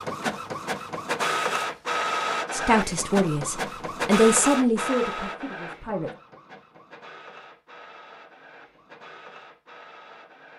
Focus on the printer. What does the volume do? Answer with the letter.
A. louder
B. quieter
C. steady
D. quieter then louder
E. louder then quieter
B.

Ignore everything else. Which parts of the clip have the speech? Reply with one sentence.
The speech can be heard from 2.5 to 6.1 s.